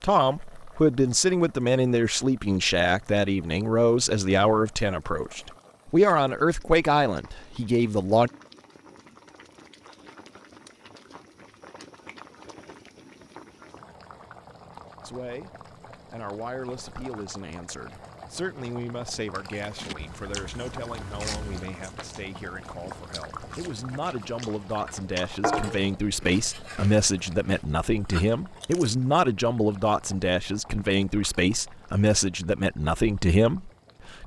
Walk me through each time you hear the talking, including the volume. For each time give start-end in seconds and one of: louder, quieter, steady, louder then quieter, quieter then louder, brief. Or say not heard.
0.0-8.3 steady
15.0-34.2 louder.